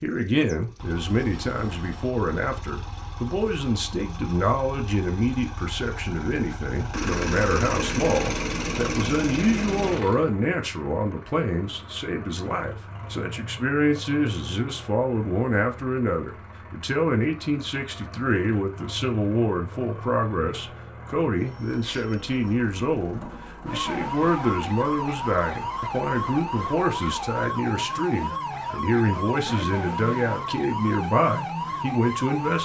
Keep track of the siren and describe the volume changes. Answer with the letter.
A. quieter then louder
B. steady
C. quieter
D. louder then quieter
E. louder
B.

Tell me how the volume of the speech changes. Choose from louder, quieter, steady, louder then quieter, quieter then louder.
steady.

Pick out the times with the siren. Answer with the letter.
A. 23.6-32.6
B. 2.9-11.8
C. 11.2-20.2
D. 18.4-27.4
A.